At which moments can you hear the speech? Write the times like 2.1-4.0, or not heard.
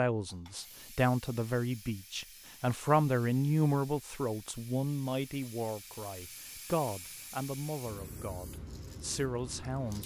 0.0-10.0.